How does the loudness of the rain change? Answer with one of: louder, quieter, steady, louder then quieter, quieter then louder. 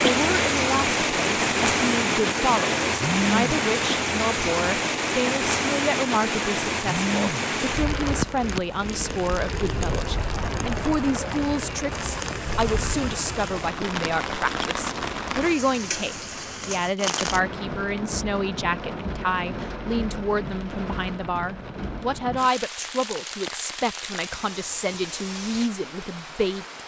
quieter.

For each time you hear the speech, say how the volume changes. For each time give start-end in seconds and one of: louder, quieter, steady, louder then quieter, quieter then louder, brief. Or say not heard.
0.0-26.6 steady.